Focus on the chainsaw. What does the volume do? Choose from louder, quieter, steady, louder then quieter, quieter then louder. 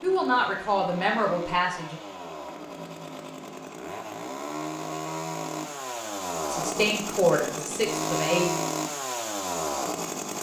louder.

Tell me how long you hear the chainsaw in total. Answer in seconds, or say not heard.
10 s.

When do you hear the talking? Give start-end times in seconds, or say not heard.
0.0-1.9, 6.5-8.4.